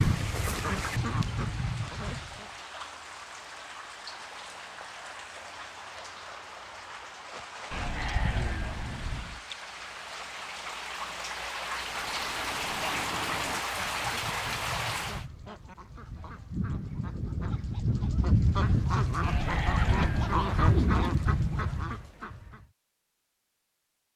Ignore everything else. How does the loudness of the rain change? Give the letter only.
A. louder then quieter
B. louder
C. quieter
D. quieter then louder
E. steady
B.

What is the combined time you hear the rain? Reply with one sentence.
You can hear the rain for 15 seconds altogether.